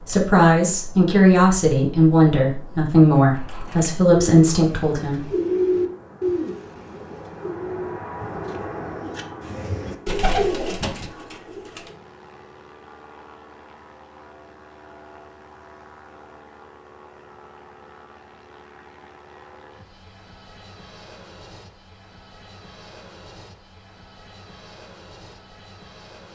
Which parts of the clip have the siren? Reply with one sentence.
You can't hear the siren here.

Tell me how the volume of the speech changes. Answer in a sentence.
The loudness of the speech stays about the same.